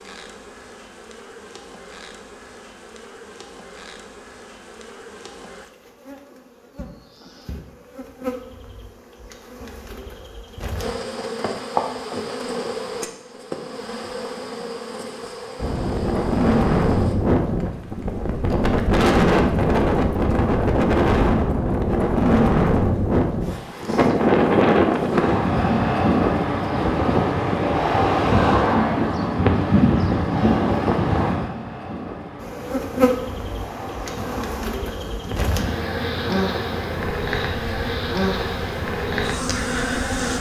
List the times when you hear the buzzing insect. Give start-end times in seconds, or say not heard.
0.0-17.1, 32.4-40.3.